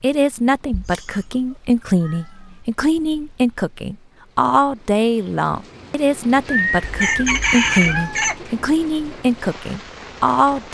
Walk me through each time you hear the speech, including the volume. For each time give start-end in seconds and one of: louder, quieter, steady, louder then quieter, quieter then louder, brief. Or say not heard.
0.0-10.7 steady.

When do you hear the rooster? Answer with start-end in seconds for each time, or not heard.
6.5-8.4.